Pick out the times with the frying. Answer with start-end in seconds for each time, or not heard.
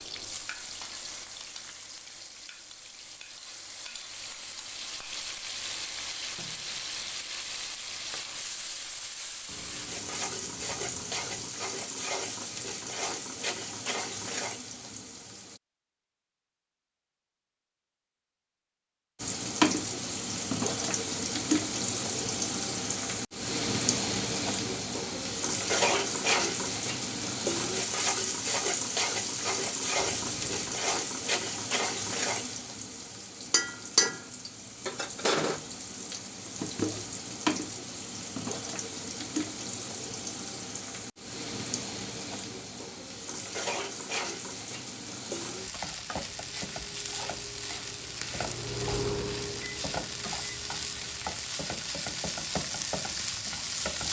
0.0-15.6, 19.2-54.0.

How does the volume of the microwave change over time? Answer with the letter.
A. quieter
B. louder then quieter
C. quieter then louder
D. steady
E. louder
B.